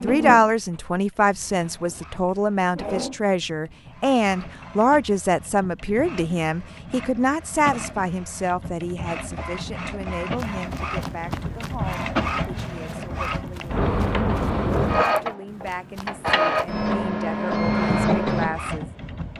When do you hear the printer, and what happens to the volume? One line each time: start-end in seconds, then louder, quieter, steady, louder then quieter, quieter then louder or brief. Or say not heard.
0.0-19.3 louder.